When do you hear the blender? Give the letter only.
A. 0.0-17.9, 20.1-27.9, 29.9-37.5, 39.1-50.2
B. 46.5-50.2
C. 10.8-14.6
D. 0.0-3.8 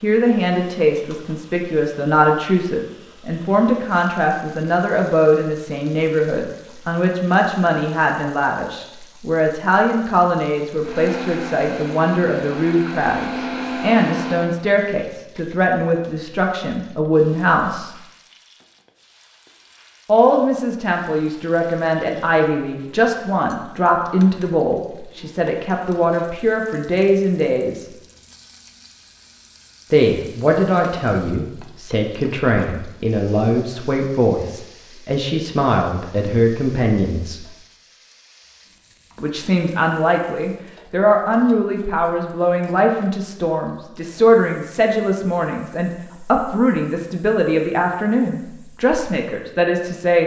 C.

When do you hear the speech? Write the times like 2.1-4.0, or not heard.
0.0-17.9, 20.1-27.9, 29.9-37.5, 39.1-50.2.